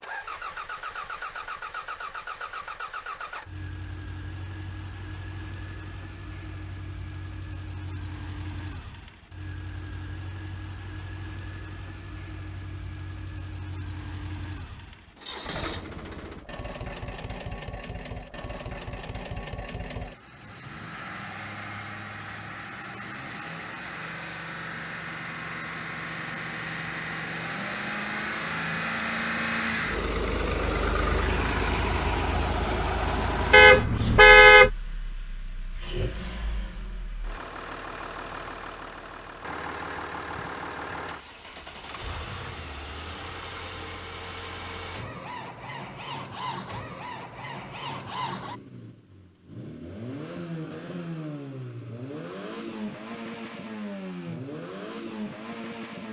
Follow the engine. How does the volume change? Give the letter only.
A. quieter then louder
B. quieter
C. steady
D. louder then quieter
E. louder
D.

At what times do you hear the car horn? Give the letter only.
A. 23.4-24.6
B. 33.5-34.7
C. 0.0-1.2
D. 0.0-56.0
B.